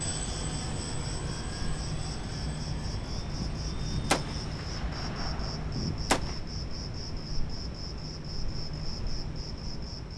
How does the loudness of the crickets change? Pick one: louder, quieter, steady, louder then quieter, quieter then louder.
steady.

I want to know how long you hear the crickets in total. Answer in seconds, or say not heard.
10 s.